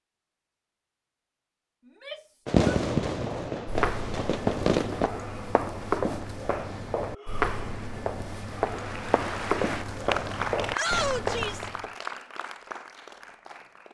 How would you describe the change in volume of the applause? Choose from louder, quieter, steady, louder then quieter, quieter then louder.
louder then quieter.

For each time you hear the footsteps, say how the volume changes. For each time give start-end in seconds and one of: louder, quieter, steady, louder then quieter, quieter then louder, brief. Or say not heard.
3.2-11.9 steady.